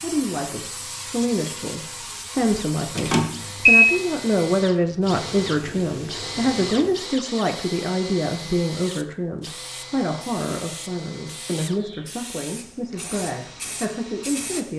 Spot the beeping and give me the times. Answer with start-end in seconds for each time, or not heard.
3.0-3.9.